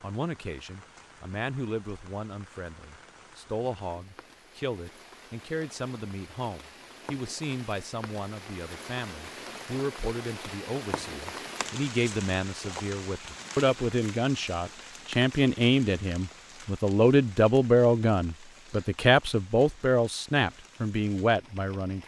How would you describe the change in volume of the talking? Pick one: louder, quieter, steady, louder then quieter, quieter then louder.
louder.